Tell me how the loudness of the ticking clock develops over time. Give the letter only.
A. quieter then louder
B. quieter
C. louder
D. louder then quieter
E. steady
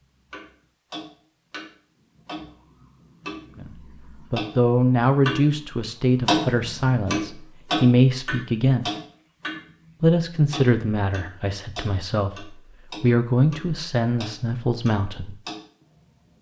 D.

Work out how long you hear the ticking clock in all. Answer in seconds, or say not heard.
15 s.